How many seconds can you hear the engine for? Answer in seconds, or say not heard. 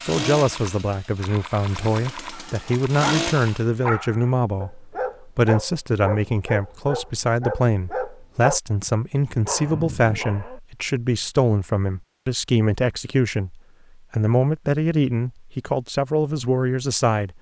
4 s.